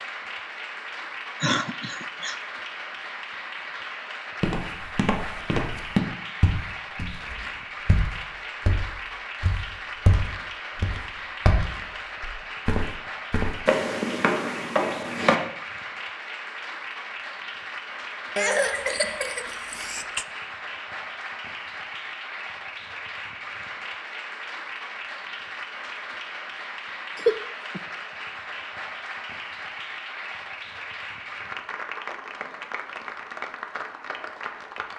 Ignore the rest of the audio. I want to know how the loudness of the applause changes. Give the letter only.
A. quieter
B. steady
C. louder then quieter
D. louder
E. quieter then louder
B.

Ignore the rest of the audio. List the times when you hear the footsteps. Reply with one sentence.
The footsteps can be heard from 4.4 to 15.3 s.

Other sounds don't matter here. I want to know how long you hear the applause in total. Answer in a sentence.
You can hear the applause for 35 seconds altogether.